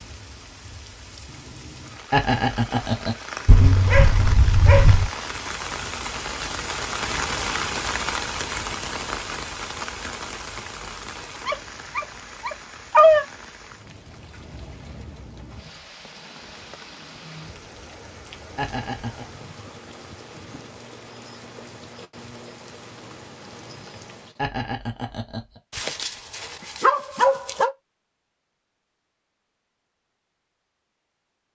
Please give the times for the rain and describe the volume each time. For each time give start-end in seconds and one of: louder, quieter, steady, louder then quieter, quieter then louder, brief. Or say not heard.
0.0-24.4 louder then quieter.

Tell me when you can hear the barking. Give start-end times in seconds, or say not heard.
3.5-5.1, 11.4-13.2, 25.7-27.7.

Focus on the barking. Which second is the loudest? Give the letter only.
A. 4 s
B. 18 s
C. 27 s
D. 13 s
D.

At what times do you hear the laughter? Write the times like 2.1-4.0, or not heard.
2.1-3.1, 18.6-19.2, 24.4-25.6.